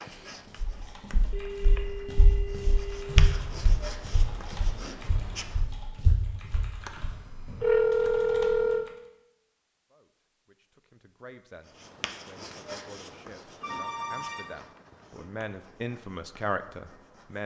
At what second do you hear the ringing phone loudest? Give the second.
8 s.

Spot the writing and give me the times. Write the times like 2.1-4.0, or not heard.
0.0-5.7, 11.6-17.4.